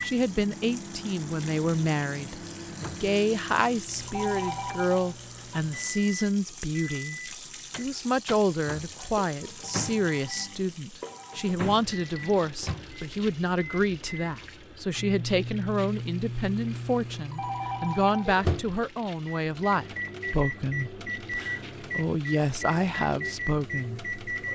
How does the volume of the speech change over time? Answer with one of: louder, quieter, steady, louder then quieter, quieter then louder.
steady.